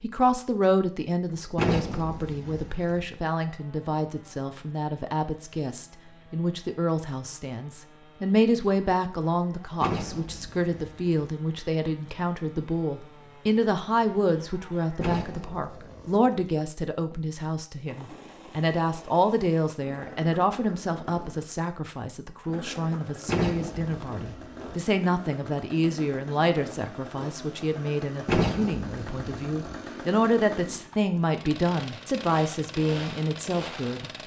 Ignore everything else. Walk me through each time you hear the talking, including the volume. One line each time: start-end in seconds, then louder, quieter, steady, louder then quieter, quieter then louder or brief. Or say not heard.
0.0-34.1 steady.